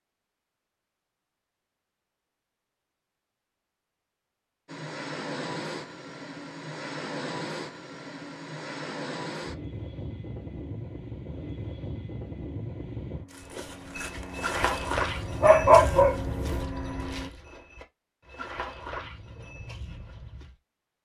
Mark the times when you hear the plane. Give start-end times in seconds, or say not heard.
4.7-17.3.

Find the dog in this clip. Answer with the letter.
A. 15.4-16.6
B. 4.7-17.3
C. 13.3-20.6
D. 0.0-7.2
A.